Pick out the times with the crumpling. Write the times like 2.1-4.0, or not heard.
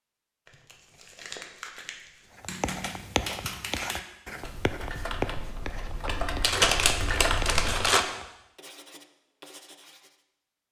0.5-2.2, 6.4-8.1.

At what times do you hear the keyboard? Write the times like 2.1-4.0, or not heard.
2.5-7.8.